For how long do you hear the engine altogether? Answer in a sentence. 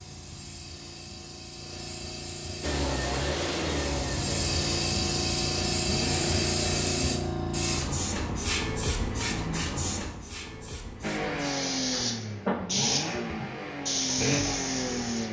The engine can be heard for 9 seconds in total.